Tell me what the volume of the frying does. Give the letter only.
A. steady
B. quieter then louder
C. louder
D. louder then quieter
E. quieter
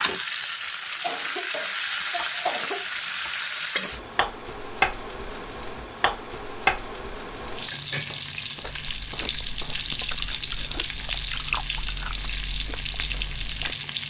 A.